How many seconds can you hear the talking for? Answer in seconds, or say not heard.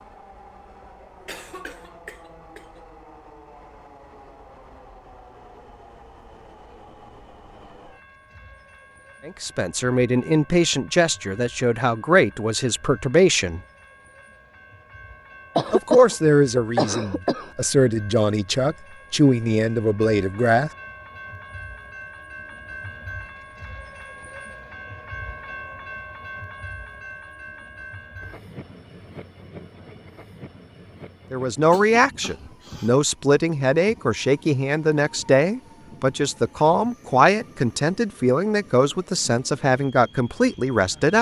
19 s.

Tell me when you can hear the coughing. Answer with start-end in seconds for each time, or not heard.
1.2-2.8, 15.6-17.5, 31.6-32.9.